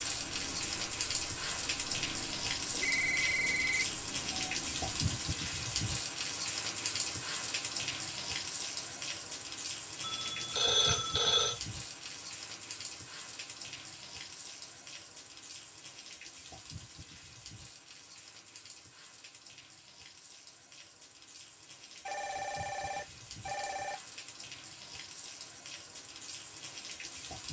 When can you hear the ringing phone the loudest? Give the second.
11 s.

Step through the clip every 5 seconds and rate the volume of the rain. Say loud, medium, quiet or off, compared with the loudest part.
loud, loud, medium, quiet, quiet, medium.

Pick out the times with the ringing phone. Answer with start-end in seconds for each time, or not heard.
2.7-4.5, 10.0-11.6, 22.1-24.0.